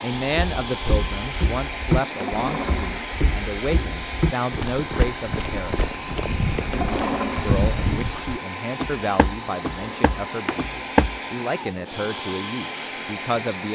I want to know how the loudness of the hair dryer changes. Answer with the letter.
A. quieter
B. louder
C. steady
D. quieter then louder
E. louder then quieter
C.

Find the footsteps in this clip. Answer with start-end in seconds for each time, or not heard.
0.2-11.2.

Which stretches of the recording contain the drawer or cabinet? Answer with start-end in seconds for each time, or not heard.
2.0-3.1, 6.5-7.5, 9.7-10.6.